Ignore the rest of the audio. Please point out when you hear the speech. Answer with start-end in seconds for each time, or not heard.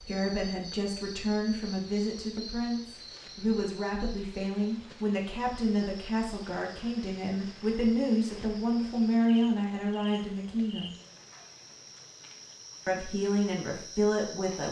0.0-10.9, 12.8-14.6.